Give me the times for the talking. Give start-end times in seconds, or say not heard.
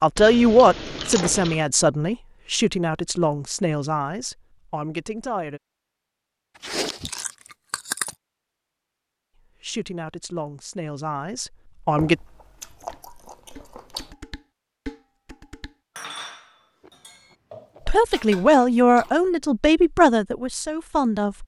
0.0-5.6, 9.6-12.2, 17.9-21.4.